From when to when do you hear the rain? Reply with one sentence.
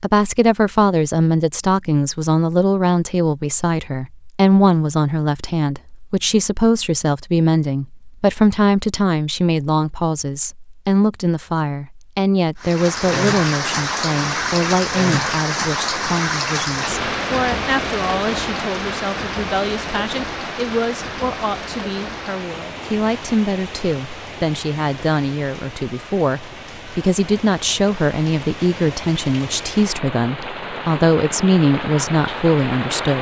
The rain can be heard from 12.6 to 33.1 s.